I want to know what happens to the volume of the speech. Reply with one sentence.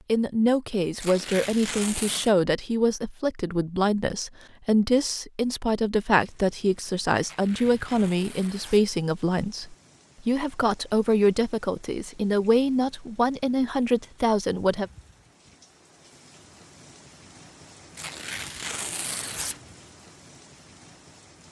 The volume of the speech stays about the same.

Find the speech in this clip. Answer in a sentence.
The speech can be heard from 0.1 to 14.9 s.